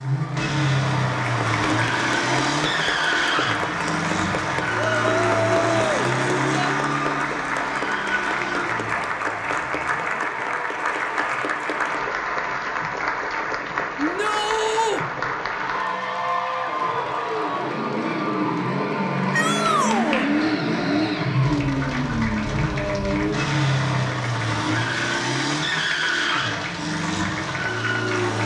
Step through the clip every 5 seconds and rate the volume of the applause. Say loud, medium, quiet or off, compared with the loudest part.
loud, loud, loud, loud, medium, medium.